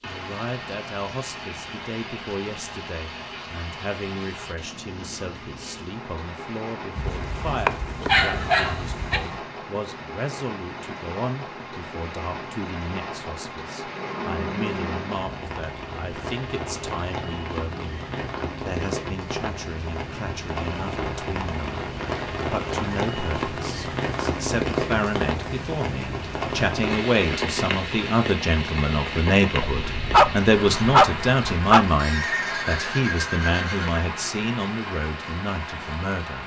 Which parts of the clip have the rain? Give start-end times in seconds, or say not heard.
0.0-36.4.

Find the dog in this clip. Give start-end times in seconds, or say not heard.
7.0-9.2, 29.6-31.9.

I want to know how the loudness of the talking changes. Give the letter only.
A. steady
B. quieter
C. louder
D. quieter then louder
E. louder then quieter
C.